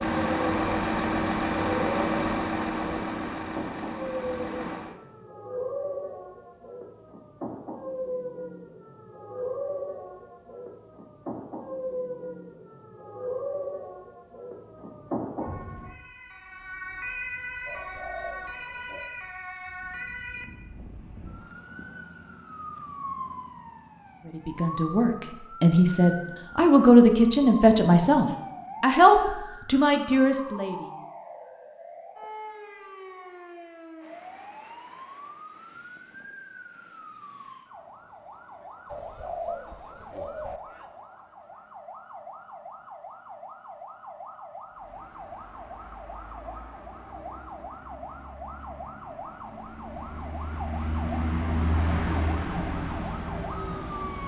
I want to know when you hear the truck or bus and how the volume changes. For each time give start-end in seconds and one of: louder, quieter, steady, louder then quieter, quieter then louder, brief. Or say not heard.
0.0-5.0 quieter
44.7-54.2 louder.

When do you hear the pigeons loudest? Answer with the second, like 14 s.
39 s.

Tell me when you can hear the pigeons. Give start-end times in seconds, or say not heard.
17.6-19.1, 38.9-40.6.